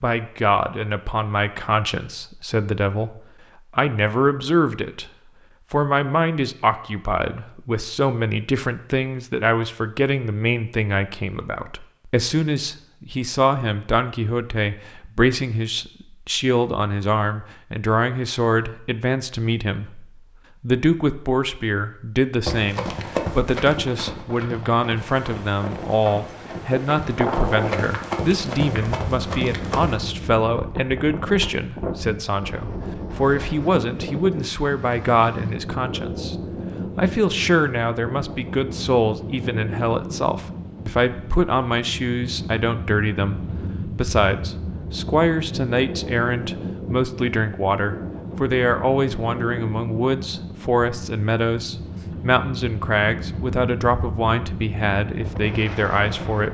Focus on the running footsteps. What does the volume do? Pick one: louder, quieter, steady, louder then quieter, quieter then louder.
quieter then louder.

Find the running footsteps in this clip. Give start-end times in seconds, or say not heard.
22.4-30.0.